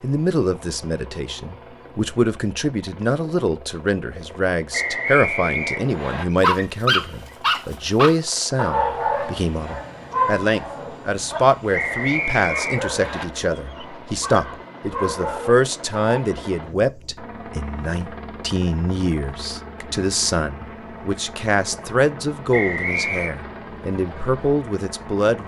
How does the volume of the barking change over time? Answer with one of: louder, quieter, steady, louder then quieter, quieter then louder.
quieter.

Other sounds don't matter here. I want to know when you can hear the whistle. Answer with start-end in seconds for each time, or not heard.
4.7-6.2, 11.7-13.2, 22.5-23.3.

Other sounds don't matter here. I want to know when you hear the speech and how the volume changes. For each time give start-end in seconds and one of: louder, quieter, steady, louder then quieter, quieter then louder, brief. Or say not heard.
0.0-25.4 steady.